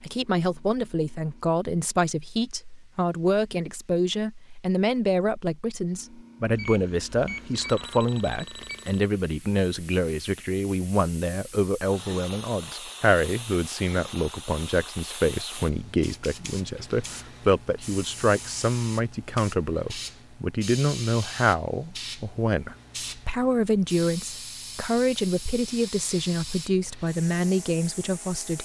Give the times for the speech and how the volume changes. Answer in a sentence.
You can hear the speech from 0.0 to 28.5 s, at a steady volume.